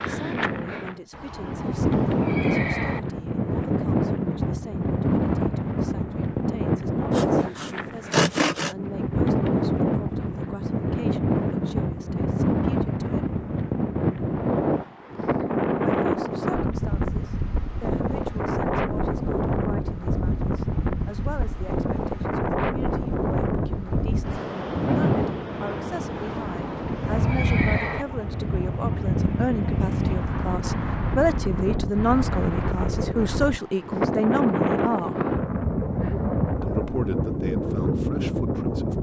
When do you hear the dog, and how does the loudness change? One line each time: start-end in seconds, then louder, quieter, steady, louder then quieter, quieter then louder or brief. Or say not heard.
not heard.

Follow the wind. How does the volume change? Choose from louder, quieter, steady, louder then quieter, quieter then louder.
steady.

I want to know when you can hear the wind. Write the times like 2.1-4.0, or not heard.
0.0-38.9.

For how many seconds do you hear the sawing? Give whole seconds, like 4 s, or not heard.
2 s.